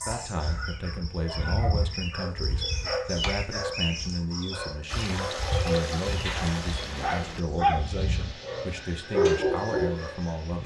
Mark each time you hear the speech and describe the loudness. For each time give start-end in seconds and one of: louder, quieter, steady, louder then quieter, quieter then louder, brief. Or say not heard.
0.1-10.6 steady.